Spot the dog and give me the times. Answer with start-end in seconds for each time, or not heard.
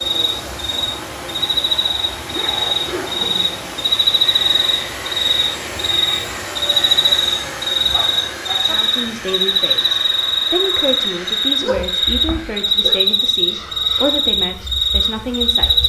2.3-3.5, 7.9-8.8, 11.4-13.0.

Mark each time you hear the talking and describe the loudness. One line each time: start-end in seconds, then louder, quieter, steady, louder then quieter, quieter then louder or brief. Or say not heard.
8.7-15.8 steady.